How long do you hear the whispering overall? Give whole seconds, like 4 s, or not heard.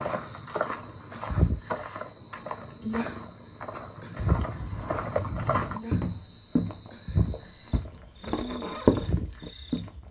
not heard.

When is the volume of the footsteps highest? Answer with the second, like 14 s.
9 s.